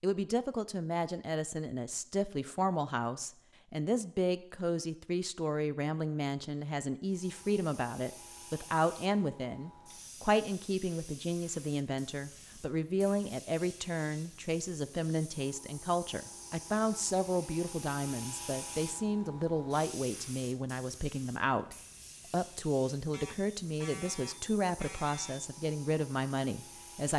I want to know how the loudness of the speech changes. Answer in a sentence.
The loudness of the speech stays about the same.